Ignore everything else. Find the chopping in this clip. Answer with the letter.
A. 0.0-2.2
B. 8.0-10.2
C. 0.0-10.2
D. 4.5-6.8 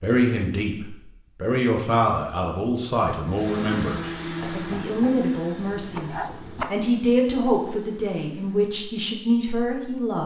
D.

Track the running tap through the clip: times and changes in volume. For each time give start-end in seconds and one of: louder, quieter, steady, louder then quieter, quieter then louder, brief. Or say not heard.
not heard.